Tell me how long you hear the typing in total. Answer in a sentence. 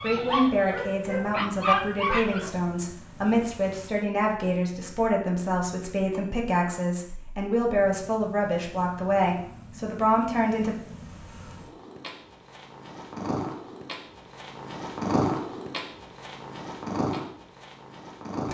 The typing can't be heard in this clip.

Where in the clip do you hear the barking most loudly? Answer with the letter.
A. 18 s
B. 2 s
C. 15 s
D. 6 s
B.